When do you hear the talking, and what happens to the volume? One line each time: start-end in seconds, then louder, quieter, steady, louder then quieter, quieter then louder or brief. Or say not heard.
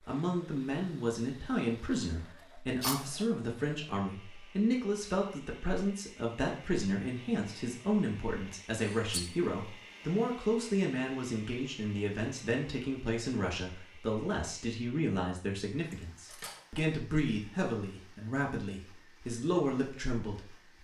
0.1-20.7 steady.